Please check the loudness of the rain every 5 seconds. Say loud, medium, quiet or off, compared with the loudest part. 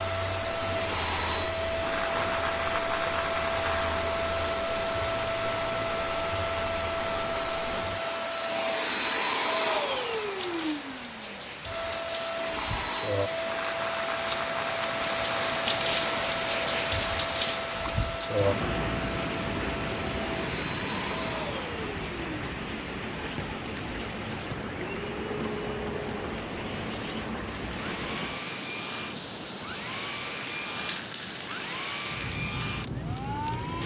medium, medium, medium, loud, medium, medium, medium.